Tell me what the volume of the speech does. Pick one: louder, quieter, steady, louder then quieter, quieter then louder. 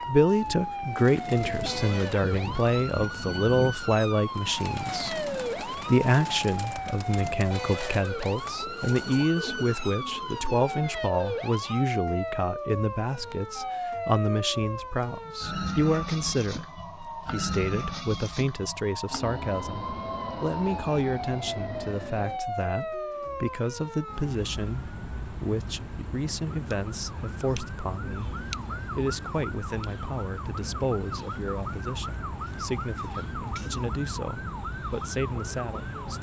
quieter.